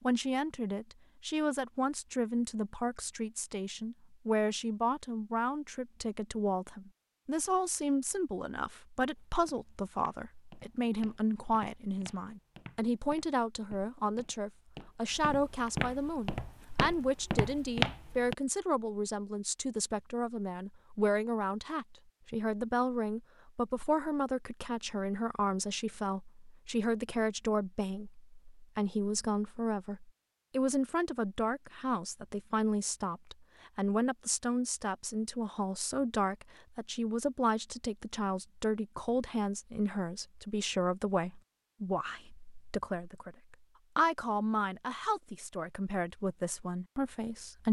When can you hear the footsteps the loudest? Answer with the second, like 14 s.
18 s.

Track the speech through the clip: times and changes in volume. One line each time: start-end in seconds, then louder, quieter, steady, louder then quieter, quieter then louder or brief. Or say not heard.
0.0-47.6 steady.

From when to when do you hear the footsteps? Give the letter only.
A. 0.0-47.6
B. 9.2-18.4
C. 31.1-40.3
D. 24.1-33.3
B.